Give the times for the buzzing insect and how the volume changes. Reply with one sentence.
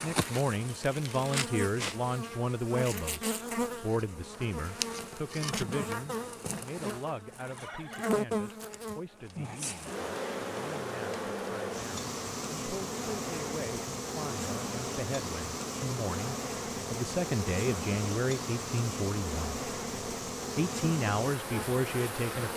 The buzzing insect can be heard from 0.0 to 22.5 s, at a steady volume.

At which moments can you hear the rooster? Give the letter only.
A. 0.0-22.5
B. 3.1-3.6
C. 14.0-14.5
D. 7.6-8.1
D.